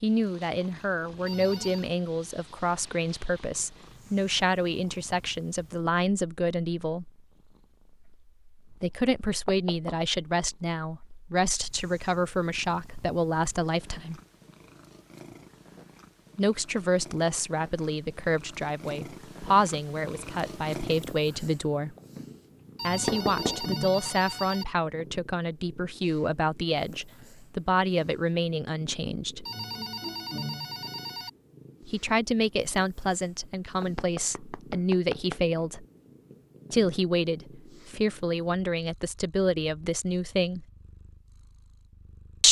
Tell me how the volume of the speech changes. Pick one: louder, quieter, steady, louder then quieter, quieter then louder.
steady.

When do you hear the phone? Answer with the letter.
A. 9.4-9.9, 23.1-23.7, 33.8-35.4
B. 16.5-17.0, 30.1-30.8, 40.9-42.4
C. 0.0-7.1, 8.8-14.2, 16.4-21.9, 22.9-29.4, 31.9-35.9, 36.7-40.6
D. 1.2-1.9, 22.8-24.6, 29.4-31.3
D.